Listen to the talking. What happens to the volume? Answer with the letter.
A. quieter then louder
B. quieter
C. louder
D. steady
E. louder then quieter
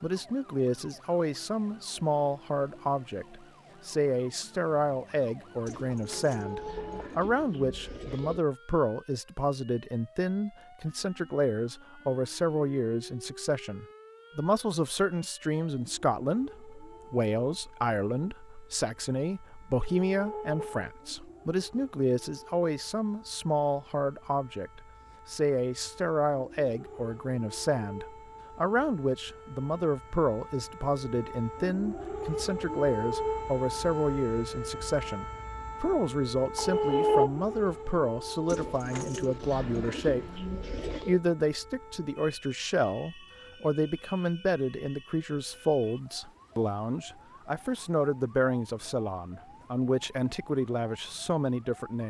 D.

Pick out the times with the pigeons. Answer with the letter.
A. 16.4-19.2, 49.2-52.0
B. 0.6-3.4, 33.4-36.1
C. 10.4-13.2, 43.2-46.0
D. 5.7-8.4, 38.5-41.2
D.